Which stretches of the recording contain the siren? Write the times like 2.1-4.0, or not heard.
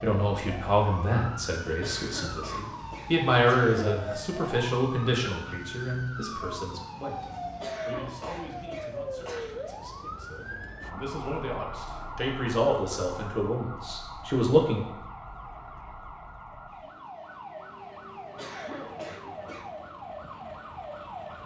0.0-21.4.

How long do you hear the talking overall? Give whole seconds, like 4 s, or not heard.
15 s.